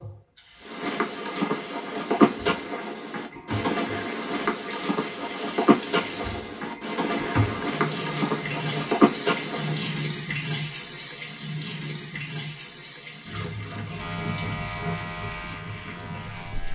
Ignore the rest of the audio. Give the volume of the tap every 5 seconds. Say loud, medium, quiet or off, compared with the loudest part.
medium, loud, loud, medium.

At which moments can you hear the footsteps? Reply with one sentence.
You can hear the footsteps from 0.6 to 10.0 s.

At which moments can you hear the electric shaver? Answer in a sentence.
You can hear the electric shaver from 14.0 to 16.7 s.